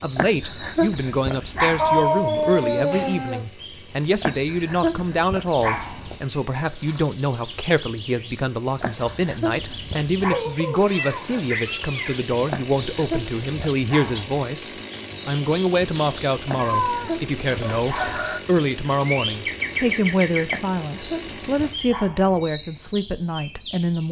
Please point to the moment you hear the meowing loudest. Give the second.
2 s.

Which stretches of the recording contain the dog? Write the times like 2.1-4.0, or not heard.
0.1-2.1, 4.2-6.2, 8.8-10.4, 12.4-14.4, 16.4-18.2, 20.4-22.5.